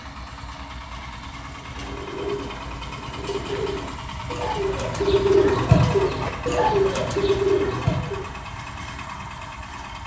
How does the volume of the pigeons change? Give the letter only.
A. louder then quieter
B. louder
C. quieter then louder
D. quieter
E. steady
B.